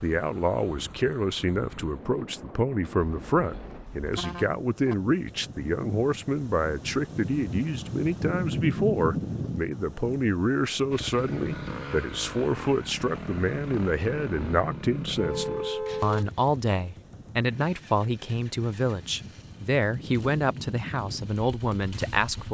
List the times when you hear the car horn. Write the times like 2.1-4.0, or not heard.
3.0-5.0, 15.2-16.3.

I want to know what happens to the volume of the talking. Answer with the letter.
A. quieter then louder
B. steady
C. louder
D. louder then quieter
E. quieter
B.